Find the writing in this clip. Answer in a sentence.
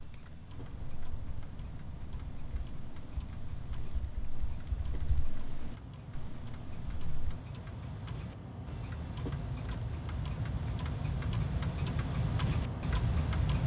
The writing can't be heard in this clip.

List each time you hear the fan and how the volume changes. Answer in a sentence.
You can hear the fan from 0.0 to 13.6 s, getting louder.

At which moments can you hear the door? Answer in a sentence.
You can't hear the door here.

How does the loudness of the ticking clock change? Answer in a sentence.
The volume of the ticking clock goes up.